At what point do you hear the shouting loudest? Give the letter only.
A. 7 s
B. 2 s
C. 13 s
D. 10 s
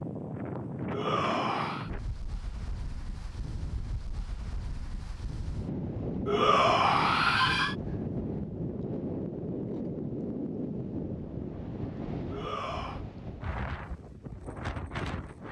A.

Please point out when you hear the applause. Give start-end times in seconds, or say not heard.
not heard.